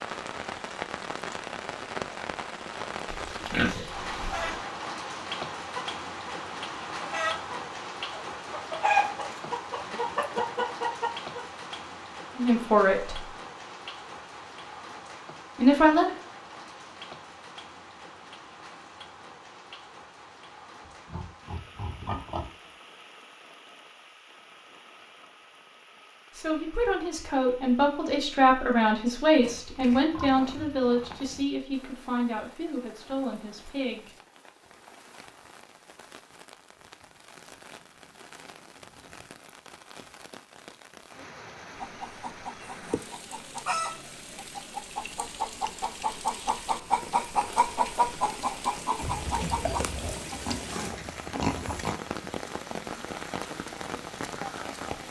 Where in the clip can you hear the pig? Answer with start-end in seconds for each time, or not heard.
3.0-4.6, 20.9-22.5, 29.4-31.4, 49.0-52.0.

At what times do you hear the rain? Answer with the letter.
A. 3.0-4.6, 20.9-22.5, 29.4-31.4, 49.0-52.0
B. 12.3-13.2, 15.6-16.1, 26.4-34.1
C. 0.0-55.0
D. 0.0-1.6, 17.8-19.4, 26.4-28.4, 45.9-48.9
C.